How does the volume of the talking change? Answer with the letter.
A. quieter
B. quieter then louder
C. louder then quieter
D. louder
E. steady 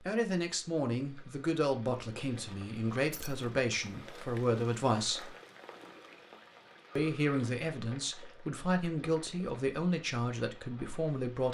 E.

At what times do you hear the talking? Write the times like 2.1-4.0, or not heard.
0.0-5.3, 7.0-11.4.